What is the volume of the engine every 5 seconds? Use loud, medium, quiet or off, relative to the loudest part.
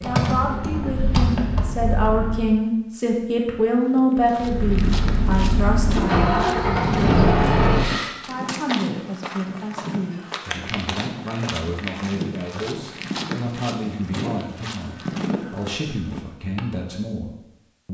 medium, loud, off, off.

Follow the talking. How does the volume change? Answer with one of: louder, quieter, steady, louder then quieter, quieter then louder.
quieter.